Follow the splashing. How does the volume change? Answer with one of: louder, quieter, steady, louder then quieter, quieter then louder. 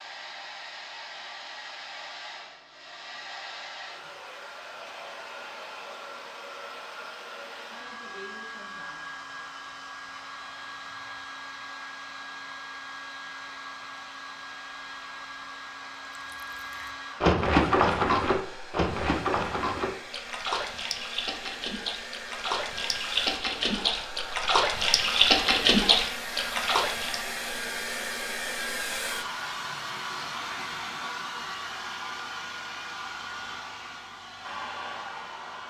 quieter then louder.